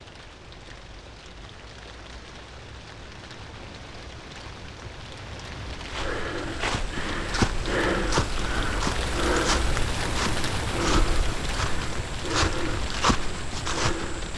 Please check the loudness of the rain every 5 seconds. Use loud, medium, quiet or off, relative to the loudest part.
medium, loud, loud.